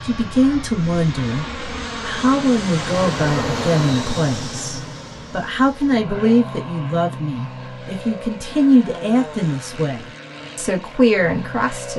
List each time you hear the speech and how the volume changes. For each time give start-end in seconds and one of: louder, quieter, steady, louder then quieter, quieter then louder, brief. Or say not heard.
0.1-1.4 brief
2.0-11.9 steady.